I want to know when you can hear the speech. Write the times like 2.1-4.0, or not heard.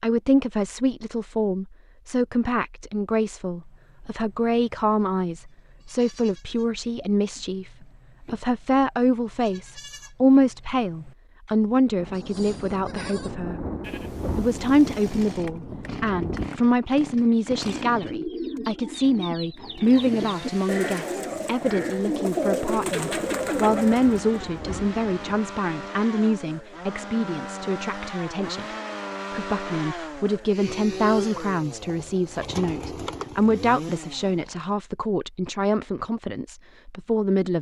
0.0-13.7, 14.3-28.6, 29.3-37.5.